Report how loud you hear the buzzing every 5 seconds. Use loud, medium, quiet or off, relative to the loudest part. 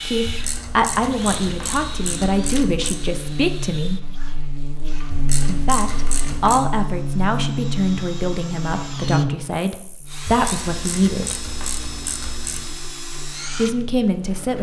medium, loud, quiet.